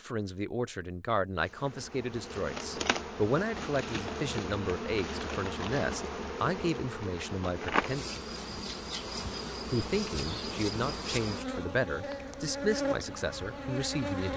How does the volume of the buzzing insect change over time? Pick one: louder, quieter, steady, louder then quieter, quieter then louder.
steady.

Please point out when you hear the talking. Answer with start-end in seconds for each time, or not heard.
0.0-8.1, 9.7-14.3.